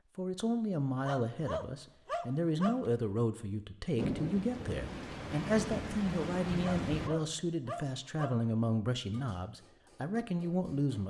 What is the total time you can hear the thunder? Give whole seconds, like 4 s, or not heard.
3 s.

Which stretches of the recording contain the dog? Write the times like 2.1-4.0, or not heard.
1.0-2.9, 6.6-8.4.